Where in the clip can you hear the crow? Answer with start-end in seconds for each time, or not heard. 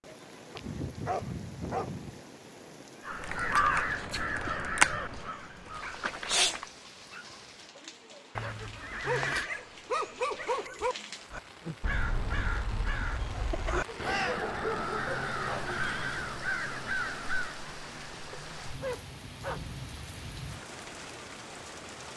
3.0-6.7, 11.3-17.6.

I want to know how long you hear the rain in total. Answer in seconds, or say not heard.
22 s.